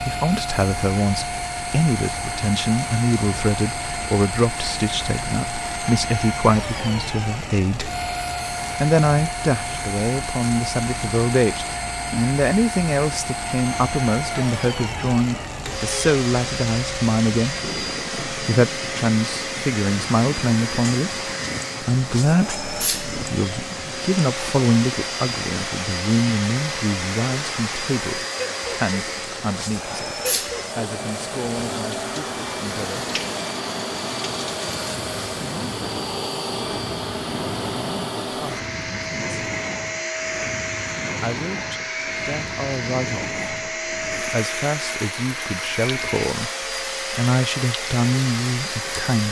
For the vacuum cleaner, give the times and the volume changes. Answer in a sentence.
You can hear the vacuum cleaner from 0.0 to 49.2 s, at a steady volume.